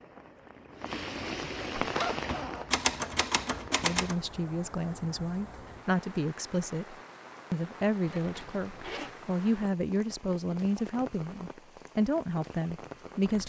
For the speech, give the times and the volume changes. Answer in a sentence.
The speech can be heard from 3.8 to 13.4 s, at a steady volume.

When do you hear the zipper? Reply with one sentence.
The zipper can be heard from 1.9 to 2.7 s and from 8.1 to 9.2 s.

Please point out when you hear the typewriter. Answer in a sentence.
The typewriter can be heard from 1.7 to 4.2 s.